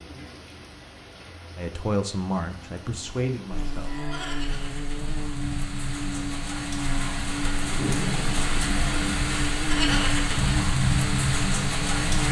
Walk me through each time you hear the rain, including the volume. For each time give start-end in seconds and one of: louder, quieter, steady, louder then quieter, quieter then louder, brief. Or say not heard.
0.0-12.2 louder.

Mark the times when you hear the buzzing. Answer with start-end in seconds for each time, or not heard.
3.5-12.2.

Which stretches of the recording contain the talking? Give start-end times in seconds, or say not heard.
1.6-3.9.